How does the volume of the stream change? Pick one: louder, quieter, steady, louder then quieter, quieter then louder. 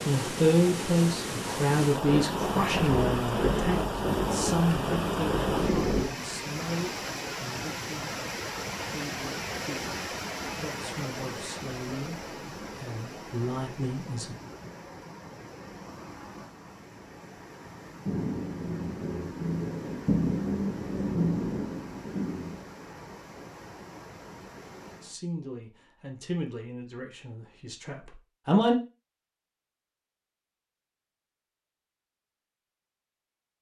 quieter.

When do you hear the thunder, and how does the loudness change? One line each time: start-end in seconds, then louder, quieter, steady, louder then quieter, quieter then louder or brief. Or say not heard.
2.0-6.1 steady
18.1-22.6 louder then quieter.